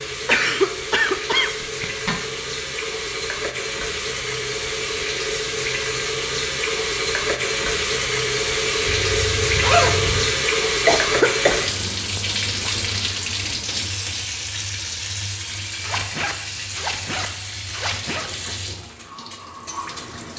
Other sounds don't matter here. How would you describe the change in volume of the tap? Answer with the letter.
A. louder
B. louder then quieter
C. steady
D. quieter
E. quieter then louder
B.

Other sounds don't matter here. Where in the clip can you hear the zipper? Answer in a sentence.
You can hear the zipper from 1.6 to 2.2 s, from 8.9 to 10.3 s and from 15.8 to 18.3 s.